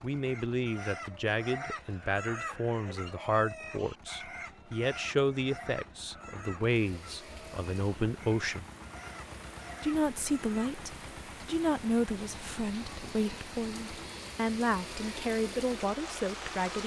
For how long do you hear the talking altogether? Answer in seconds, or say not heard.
16 s.